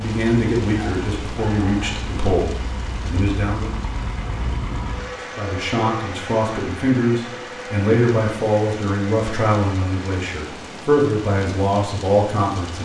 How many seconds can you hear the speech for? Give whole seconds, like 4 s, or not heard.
11 s.